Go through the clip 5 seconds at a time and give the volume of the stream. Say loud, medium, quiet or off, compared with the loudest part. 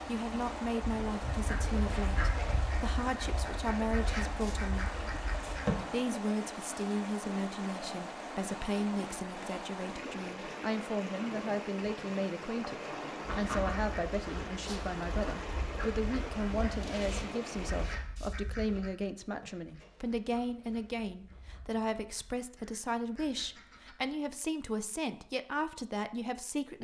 loud, loud, loud, loud, off, off.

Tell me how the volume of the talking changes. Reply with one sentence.
The volume of the talking stays about the same.